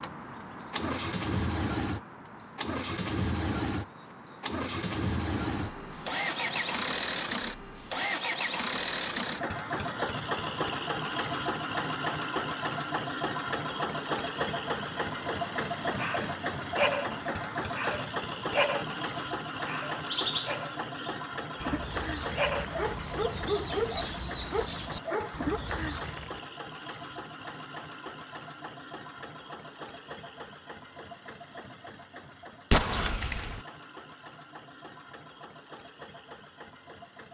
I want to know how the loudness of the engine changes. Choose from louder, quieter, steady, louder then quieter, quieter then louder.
quieter.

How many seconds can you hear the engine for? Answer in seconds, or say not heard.
37 s.